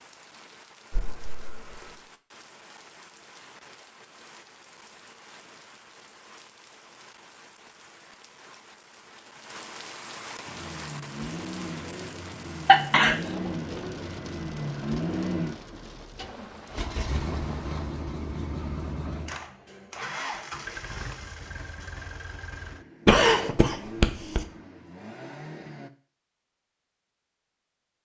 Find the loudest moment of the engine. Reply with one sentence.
The loudest moment of the engine is at 15 seconds.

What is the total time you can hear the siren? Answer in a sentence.
The siren can't be heard in this clip.